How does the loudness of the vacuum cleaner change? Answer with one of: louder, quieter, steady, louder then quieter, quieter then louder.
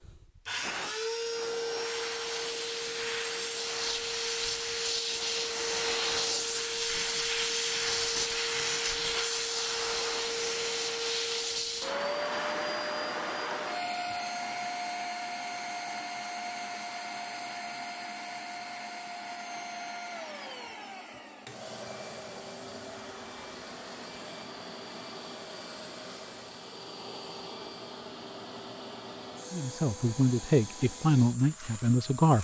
quieter.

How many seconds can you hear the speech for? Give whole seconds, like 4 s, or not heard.
3 s.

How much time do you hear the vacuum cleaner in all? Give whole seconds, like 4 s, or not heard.
32 s.